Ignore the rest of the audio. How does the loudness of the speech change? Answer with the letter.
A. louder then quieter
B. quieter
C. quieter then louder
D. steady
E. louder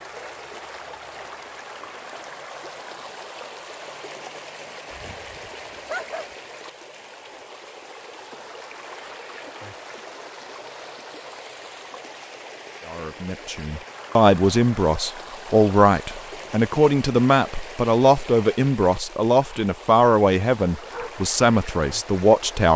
D.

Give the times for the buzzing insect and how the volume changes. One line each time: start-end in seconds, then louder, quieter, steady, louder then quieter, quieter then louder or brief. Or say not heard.
not heard.